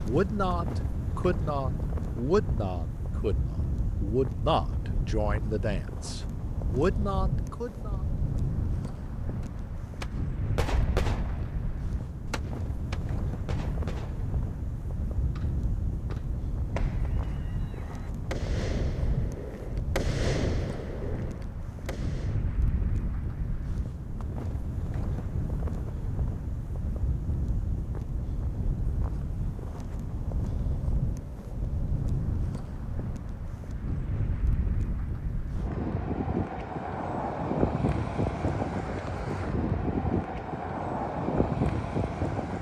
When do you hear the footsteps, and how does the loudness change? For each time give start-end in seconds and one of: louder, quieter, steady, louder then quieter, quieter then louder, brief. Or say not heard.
not heard.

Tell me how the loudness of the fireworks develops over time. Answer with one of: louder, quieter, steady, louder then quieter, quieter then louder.
quieter then louder.